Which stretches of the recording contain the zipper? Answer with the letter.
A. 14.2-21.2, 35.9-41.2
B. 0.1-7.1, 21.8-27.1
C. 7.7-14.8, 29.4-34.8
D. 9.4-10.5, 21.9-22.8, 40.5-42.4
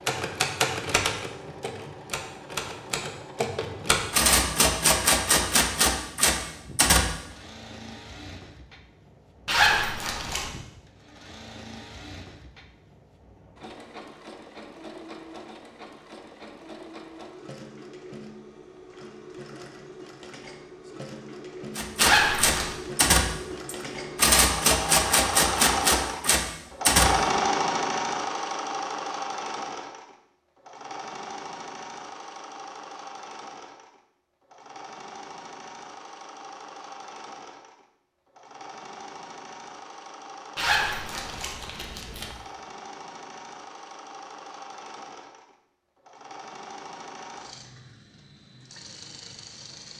D.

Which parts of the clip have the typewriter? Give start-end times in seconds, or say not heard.
0.1-7.1, 21.8-27.1.